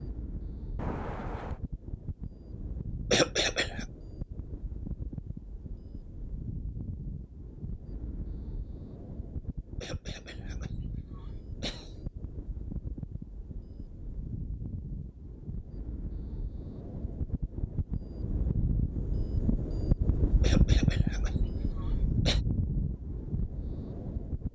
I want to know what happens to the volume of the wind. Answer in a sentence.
The loudness of the wind goes up.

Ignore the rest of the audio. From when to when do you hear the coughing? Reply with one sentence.
You can hear the coughing from 3.1 to 3.9 s, from 9.8 to 11.9 s and from 20.4 to 22.4 s.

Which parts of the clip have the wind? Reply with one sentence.
You can hear the wind from 0.0 to 24.5 s.